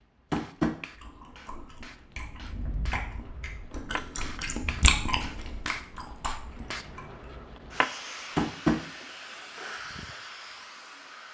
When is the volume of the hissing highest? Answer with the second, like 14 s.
8 s.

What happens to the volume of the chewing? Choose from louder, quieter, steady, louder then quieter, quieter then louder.
louder then quieter.